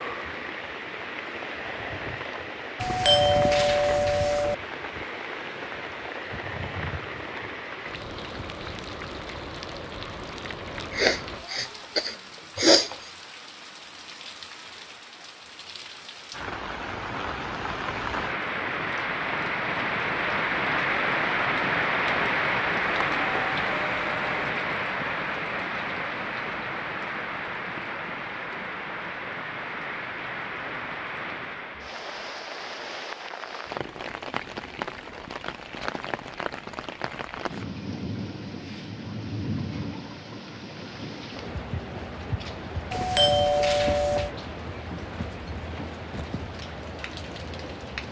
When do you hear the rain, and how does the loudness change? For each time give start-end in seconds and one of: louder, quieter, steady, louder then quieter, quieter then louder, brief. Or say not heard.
0.0-48.0 louder then quieter.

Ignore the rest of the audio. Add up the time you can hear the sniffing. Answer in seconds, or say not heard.
2 s.